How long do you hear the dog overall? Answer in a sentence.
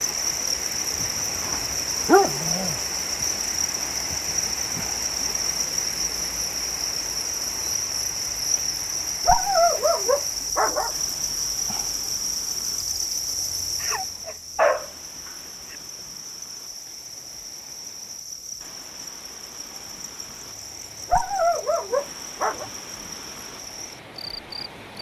You can hear the dog for 7 seconds altogether.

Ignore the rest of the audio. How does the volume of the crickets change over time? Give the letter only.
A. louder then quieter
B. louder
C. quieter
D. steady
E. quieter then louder
C.